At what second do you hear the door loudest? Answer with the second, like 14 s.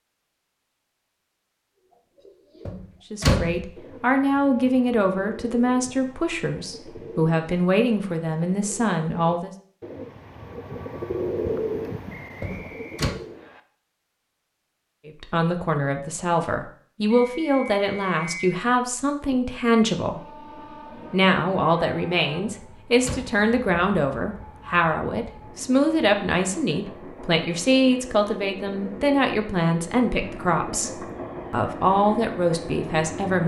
3 s.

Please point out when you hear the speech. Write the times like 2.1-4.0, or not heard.
3.1-9.5, 15.1-20.2, 21.1-33.4.